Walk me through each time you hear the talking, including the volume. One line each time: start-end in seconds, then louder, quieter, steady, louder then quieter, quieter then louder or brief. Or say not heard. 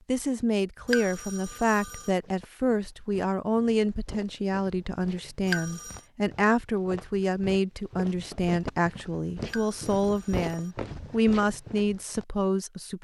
0.1-12.9 steady.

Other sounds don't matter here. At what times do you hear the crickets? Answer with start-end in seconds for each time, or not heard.
not heard.